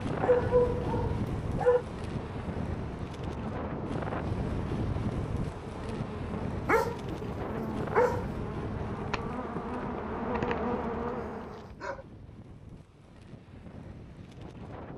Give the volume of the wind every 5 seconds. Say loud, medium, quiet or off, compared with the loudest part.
loud, loud, quiet.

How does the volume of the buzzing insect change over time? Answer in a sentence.
The loudness of the buzzing insect goes up.